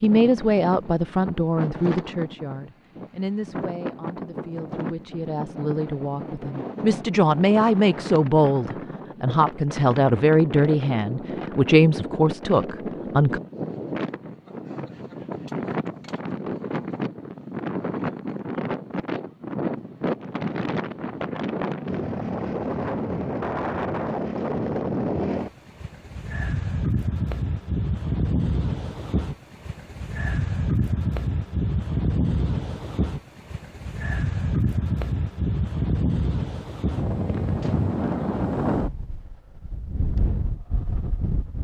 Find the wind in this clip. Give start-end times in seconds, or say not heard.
0.0-41.5.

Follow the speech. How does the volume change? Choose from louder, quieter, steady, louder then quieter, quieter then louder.
quieter then louder.